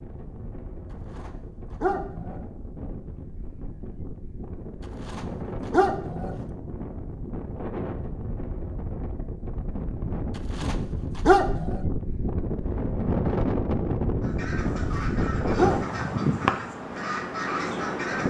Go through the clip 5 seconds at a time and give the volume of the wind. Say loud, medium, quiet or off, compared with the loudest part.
quiet, medium, loud, loud.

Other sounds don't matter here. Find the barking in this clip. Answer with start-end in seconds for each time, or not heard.
1.1-2.4, 5.0-6.5, 10.5-11.8, 14.8-16.2.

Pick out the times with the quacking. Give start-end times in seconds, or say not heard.
14.2-18.2.